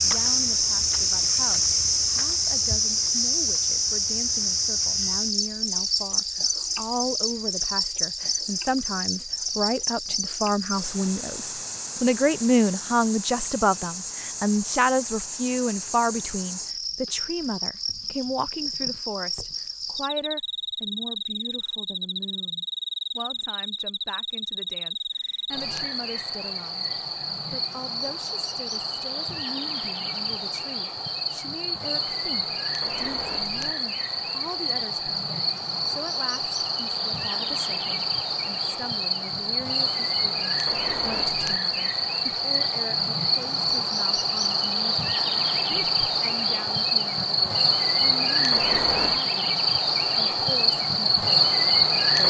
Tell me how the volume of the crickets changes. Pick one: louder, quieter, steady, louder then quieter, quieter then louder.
quieter then louder.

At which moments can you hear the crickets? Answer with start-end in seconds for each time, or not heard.
0.0-52.2.